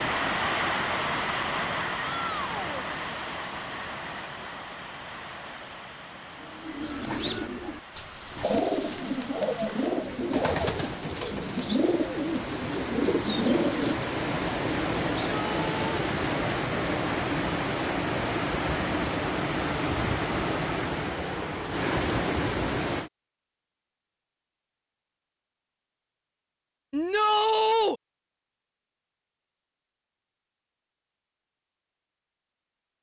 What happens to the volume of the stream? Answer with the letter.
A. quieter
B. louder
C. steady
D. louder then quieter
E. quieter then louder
E.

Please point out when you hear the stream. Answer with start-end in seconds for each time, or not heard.
0.0-23.1.